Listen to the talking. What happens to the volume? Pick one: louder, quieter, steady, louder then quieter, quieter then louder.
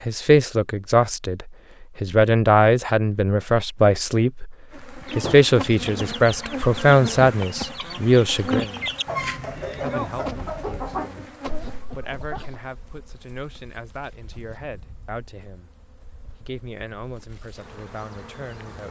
quieter.